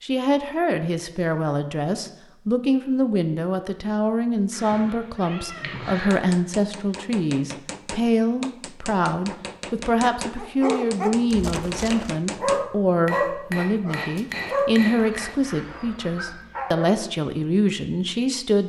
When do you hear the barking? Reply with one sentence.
The barking can be heard from 10.3 to 17.0 s.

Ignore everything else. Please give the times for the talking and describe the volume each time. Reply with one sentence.
You can hear the talking from 0.0 to 18.6 s, at a steady volume.